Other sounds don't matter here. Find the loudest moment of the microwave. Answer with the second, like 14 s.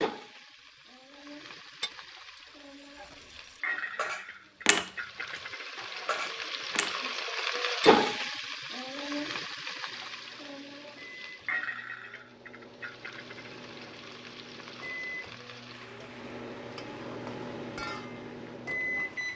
19 s.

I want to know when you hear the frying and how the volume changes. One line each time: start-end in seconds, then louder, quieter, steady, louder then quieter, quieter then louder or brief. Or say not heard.
0.0-19.3 louder then quieter.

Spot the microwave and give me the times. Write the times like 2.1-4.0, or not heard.
9.8-19.3.